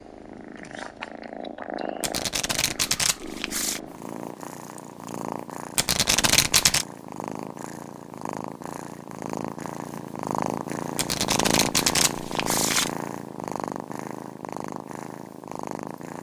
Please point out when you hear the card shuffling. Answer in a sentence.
You can hear the card shuffling from 2.0 to 3.8 s, from 5.8 to 6.8 s and from 10.9 to 12.9 s.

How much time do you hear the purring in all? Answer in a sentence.
The purring can be heard for 16 seconds in total.